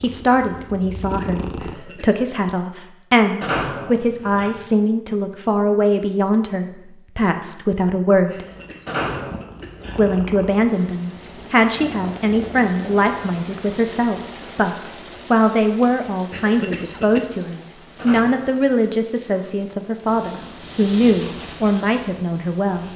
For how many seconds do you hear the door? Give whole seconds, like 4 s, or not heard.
3 s.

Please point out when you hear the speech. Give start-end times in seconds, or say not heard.
0.0-8.4, 9.9-22.9.